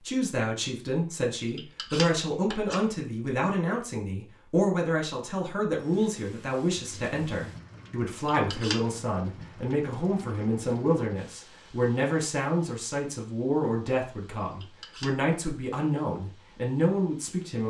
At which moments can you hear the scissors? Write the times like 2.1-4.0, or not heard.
1.6-2.8, 8.2-8.8, 14.6-15.1.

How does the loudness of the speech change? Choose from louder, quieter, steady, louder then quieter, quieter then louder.
steady.